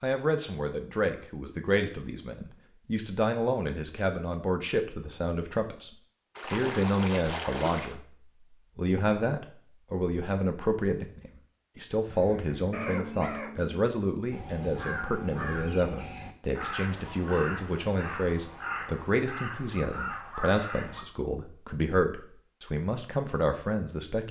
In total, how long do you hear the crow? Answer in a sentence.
The crow can be heard for 9 seconds in total.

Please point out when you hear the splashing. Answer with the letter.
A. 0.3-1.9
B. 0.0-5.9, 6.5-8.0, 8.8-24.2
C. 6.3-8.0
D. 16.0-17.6
C.